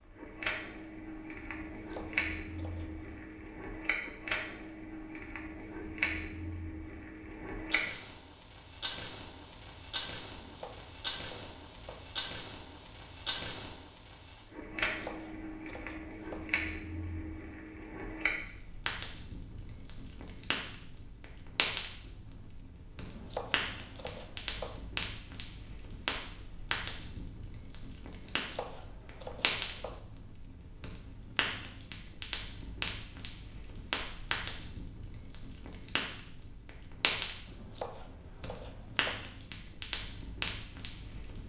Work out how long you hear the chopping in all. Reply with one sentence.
The chopping can be heard for 10 seconds in total.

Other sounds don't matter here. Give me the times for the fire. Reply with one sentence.
You can hear the fire from 0.1 to 41.4 s.